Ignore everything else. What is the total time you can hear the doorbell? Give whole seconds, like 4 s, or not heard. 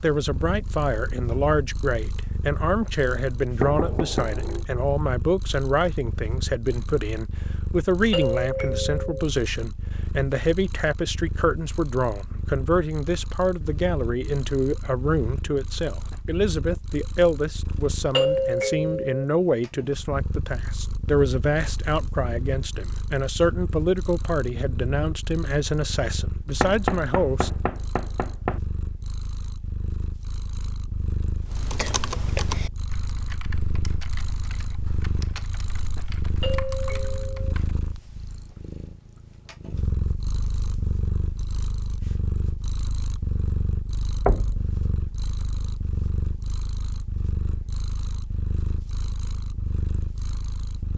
3 s.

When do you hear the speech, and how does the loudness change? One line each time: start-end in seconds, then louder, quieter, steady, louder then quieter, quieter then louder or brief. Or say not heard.
0.0-27.5 steady.